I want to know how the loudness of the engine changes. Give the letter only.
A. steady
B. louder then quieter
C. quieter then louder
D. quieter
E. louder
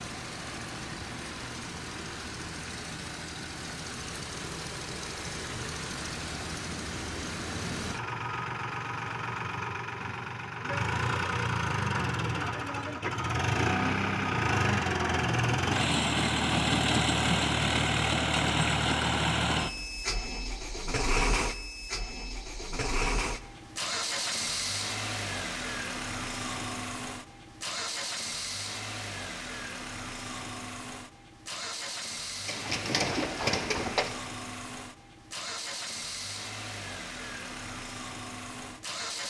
B.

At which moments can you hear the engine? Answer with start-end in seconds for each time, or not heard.
0.0-39.2.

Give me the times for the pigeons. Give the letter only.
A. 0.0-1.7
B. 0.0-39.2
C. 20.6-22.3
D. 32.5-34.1
D.